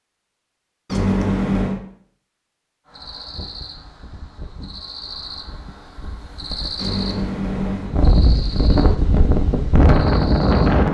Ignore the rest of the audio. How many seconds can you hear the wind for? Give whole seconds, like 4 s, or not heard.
8 s.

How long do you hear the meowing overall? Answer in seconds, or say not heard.
2 s.